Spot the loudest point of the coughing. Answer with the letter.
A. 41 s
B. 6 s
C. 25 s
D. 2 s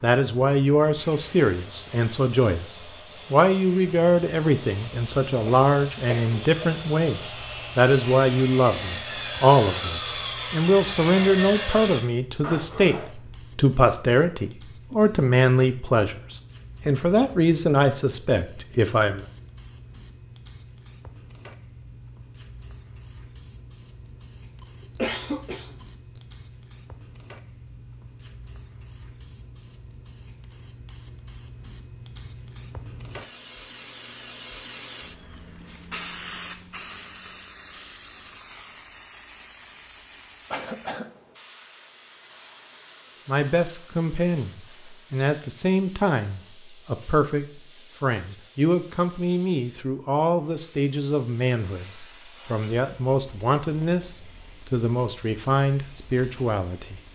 C.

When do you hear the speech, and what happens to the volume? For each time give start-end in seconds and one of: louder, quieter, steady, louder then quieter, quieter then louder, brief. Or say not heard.
0.0-19.2 steady
43.2-57.0 steady.